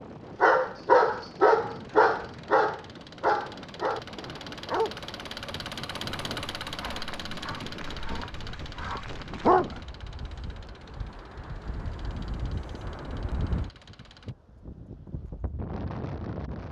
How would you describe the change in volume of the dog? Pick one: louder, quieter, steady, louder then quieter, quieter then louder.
quieter then louder.